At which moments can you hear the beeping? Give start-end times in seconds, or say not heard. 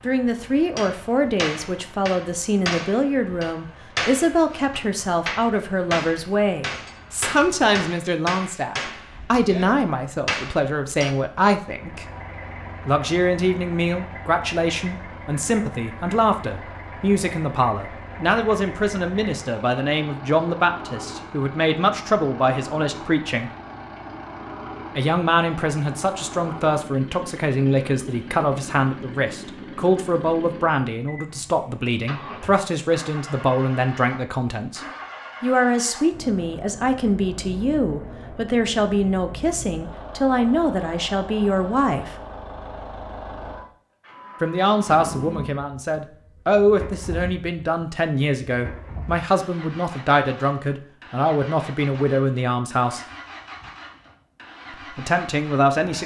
not heard.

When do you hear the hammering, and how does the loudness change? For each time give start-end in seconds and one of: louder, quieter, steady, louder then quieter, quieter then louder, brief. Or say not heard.
0.8-11.2 steady.